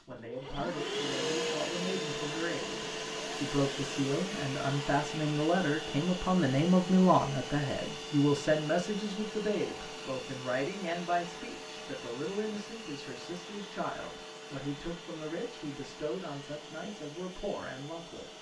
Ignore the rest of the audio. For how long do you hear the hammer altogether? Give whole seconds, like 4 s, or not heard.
not heard.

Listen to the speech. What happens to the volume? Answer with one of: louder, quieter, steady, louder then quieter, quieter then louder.
louder then quieter.